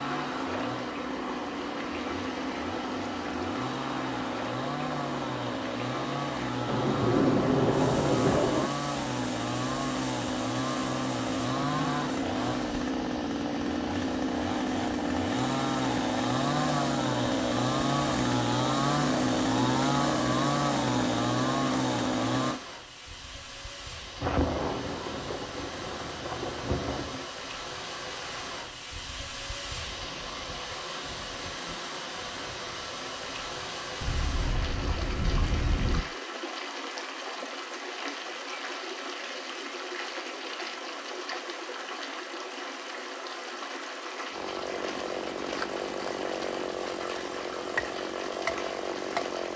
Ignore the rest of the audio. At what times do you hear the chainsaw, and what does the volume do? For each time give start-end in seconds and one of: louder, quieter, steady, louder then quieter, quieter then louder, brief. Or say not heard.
0.0-22.6 louder
44.3-49.5 steady.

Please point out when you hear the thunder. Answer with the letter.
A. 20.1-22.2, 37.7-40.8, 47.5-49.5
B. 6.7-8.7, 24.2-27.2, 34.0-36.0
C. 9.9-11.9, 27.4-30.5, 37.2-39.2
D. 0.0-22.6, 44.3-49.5
B.